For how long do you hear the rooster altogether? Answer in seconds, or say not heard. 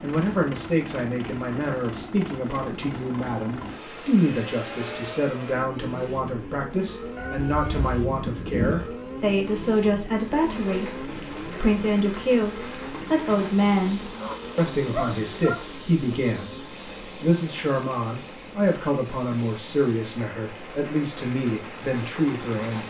2 s.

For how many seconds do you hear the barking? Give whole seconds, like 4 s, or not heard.
2 s.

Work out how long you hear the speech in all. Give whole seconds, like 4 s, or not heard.
23 s.